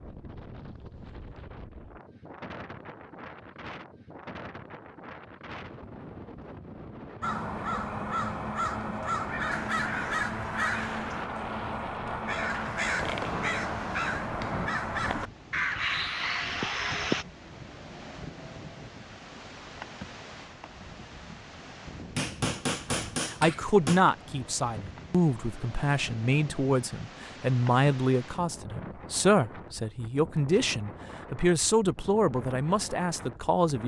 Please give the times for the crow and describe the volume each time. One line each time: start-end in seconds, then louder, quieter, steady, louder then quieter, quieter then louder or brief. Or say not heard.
7.2-17.2 steady.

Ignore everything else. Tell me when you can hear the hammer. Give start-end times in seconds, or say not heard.
13.0-14.7, 22.1-24.0.